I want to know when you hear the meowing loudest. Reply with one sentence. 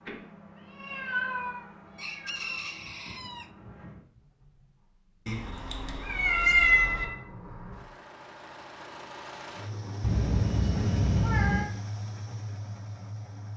The loudest moment of the meowing is at 7 seconds.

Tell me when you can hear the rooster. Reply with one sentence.
The rooster can be heard from 1.9 to 3.5 s.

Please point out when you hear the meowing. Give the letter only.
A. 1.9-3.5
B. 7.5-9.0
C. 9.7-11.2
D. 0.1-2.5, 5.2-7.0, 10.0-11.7
D.